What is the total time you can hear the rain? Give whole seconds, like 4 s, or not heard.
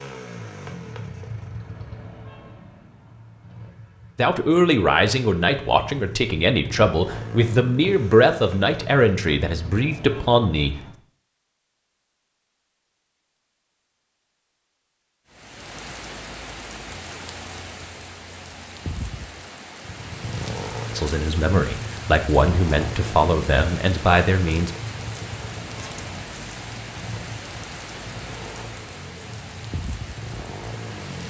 16 s.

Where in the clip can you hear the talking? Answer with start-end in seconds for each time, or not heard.
4.2-10.8, 20.9-24.8.